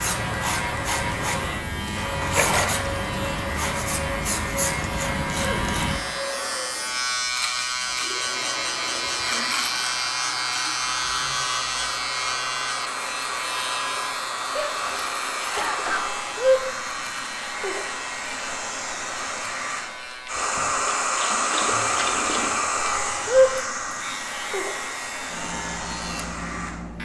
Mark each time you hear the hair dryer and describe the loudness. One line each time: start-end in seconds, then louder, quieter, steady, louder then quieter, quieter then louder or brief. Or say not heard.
0.0-27.0 louder.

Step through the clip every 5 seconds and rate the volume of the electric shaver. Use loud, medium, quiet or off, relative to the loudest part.
loud, loud, loud, medium, medium, medium.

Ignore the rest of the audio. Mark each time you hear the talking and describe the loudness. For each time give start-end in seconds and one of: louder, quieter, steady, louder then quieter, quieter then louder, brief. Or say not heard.
not heard.